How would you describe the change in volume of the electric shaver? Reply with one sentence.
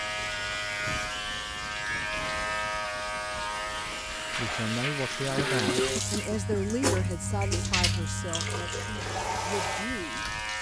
The volume of the electric shaver goes down, then up.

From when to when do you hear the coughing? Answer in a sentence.
The coughing can be heard from 5.3 to 6.8 s.